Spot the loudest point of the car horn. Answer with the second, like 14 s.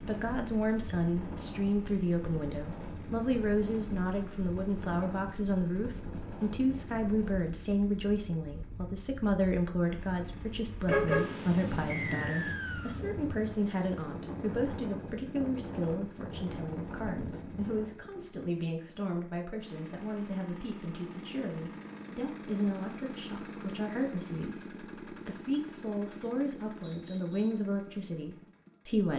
11 s.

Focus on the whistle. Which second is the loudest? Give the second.
12 s.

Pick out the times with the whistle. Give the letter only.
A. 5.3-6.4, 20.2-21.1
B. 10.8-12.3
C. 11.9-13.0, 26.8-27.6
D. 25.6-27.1
C.